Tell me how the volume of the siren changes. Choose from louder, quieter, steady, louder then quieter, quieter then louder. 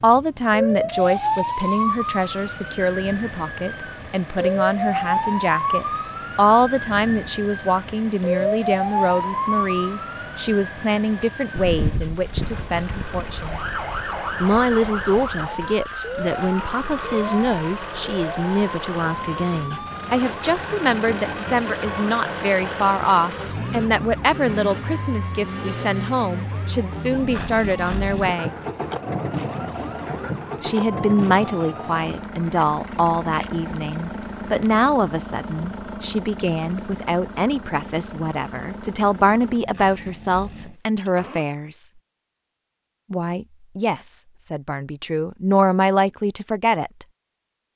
quieter.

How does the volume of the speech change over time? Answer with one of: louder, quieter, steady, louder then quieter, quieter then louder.
steady.